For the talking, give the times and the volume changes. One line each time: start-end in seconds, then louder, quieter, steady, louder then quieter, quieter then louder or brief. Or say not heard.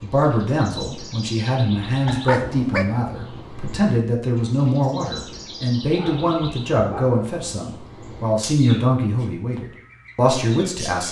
0.0-11.0 steady.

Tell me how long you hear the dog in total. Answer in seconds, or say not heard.
2 s.